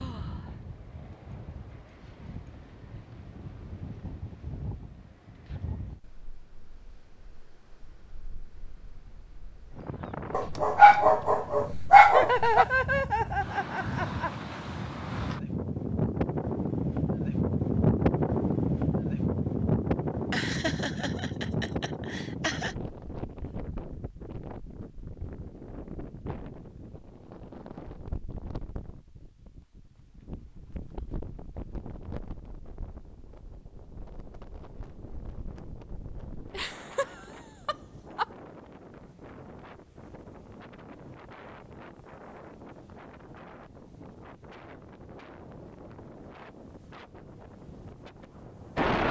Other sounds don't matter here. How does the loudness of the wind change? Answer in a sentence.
The loudness of the wind goes up, then down.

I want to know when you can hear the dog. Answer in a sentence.
You can hear the dog from 10.3 to 12.7 s.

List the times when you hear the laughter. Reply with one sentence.
The laughter can be heard from 12.1 to 14.3 s, from 20.3 to 22.8 s and from 36.5 to 38.2 s.